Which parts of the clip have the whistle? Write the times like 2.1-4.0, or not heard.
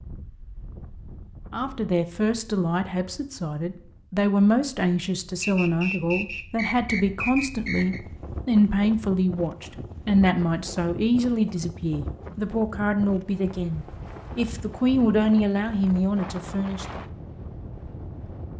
5.4-8.0.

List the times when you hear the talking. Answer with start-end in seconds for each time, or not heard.
1.5-17.0.